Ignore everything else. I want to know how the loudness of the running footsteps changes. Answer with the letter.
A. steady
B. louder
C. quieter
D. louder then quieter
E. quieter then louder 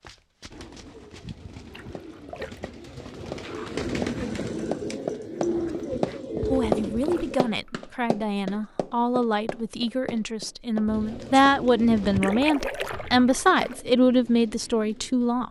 D.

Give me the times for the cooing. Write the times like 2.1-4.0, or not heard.
0.5-7.3, 10.8-15.4.